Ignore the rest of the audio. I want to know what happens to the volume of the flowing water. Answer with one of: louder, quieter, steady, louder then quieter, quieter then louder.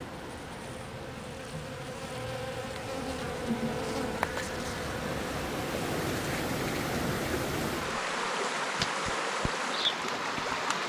louder.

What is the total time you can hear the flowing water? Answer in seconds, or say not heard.
11 s.